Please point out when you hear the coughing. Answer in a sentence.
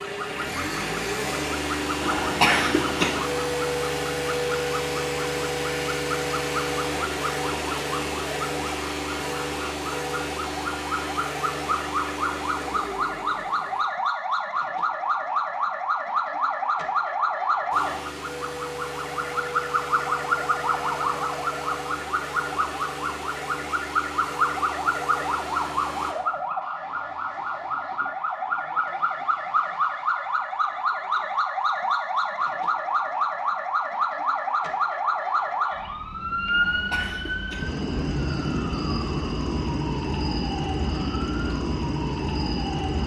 You can hear the coughing from 2.0 to 3.2 s and from 36.5 to 37.7 s.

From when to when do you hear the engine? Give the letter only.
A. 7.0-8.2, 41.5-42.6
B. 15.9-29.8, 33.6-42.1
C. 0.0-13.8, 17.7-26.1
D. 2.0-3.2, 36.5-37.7
C.